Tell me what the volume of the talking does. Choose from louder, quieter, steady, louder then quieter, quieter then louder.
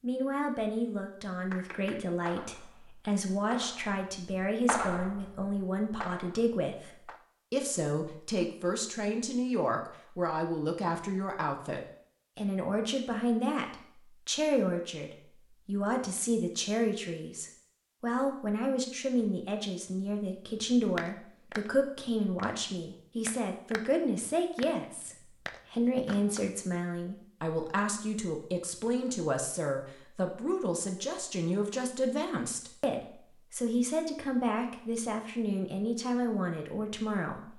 steady.